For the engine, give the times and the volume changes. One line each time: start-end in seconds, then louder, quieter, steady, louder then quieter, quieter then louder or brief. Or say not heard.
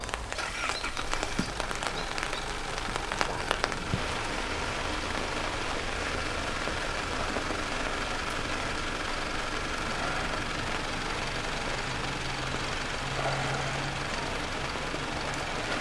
0.0-15.7 steady.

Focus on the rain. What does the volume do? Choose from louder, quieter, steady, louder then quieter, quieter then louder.
steady.